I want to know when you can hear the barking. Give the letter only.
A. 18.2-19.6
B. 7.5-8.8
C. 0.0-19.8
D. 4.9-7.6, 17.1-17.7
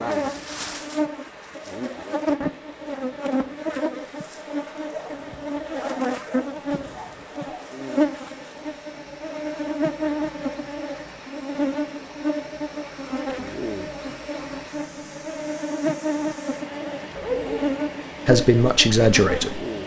D.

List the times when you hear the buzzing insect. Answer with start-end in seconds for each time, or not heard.
0.0-19.8.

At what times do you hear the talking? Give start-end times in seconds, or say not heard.
18.2-19.6.